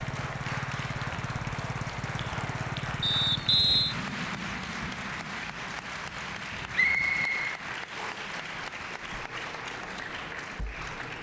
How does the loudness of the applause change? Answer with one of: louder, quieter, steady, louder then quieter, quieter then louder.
steady.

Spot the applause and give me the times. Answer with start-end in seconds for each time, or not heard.
0.0-11.1.